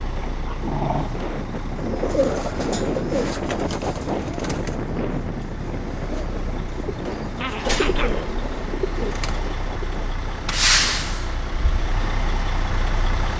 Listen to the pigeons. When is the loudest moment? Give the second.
2 s.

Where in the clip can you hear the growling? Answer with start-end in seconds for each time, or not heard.
0.2-1.1, 7.4-8.3.